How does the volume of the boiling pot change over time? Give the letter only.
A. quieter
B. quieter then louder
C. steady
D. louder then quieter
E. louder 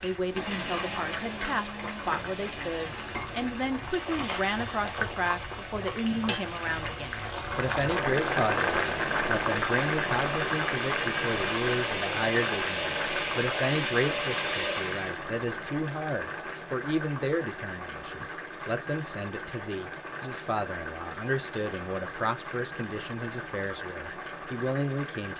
D.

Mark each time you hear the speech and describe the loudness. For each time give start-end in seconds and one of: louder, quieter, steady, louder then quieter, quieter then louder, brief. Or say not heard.
0.0-25.3 steady.